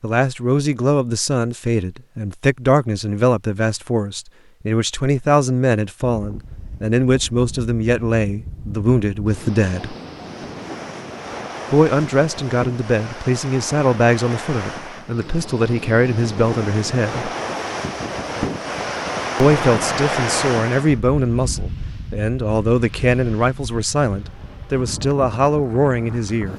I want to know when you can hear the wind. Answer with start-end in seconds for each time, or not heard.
6.1-26.5.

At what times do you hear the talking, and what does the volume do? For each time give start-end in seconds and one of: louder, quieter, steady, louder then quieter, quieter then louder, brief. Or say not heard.
0.0-9.9 steady
11.7-17.3 steady
19.4-26.5 steady.